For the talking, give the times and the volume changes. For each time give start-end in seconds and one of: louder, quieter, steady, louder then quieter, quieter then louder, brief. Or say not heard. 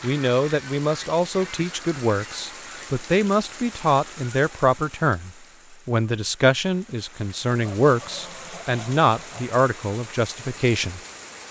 0.0-11.0 steady.